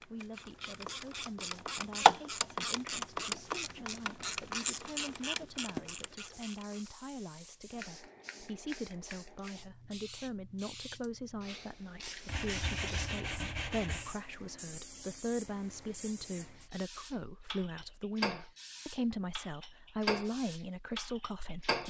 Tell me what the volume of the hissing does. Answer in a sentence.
The volume of the hissing goes up.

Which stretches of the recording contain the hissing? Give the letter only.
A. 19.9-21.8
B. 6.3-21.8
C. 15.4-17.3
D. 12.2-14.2
B.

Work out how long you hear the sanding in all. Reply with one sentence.
You can hear the sanding for 2 seconds altogether.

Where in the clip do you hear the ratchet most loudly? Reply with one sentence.
The volume of the ratchet peaks at 2 seconds.